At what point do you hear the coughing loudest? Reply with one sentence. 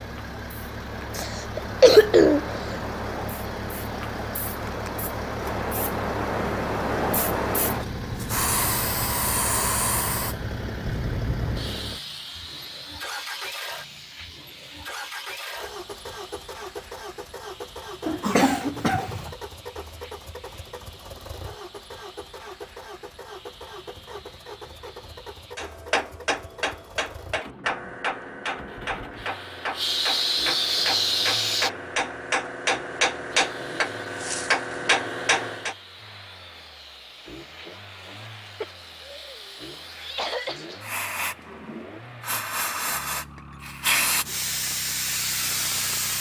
The volume of the coughing peaks at 2 seconds.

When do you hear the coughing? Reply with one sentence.
The coughing can be heard from 1.1 to 2.6 s, from 18.1 to 19.3 s and from 38.6 to 40.6 s.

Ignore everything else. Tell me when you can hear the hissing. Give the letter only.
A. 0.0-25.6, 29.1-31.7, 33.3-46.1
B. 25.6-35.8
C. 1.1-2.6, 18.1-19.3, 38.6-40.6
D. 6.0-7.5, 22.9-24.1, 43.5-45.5
A.